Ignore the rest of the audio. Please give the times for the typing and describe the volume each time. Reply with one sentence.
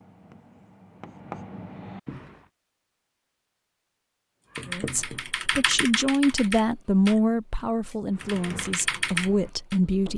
The typing can be heard from 4.5 to 9.8 s, getting quieter then louder.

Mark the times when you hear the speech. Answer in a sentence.
You can hear the speech from 4.7 to 10.1 s.